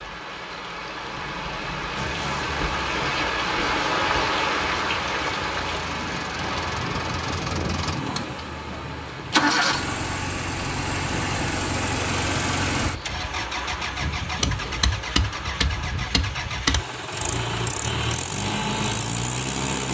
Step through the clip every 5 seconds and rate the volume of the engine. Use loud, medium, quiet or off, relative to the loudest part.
medium, loud, loud, loud.